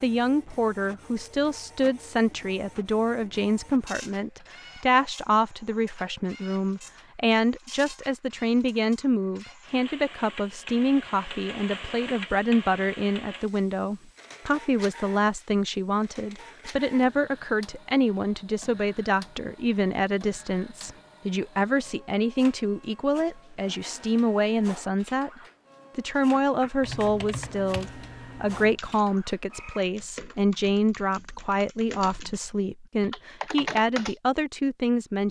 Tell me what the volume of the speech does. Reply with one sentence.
The volume of the speech stays about the same.